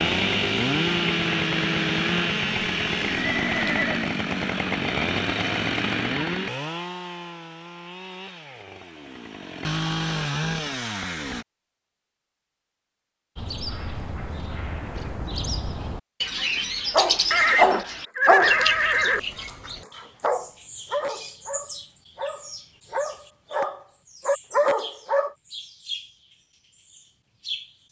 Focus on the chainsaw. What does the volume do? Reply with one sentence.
The loudness of the chainsaw goes down, then up.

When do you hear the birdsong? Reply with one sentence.
The birdsong can be heard from 13.3 to 27.8 s.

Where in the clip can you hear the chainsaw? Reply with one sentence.
The chainsaw can be heard from 0.0 to 11.4 s.